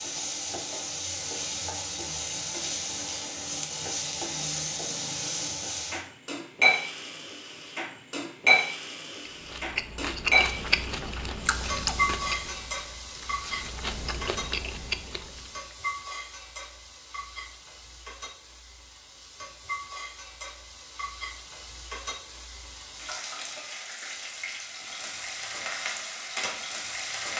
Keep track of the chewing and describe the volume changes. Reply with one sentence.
The volume of the chewing goes down, then up.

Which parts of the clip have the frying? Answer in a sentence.
You can hear the frying from 0.0 to 27.3 s.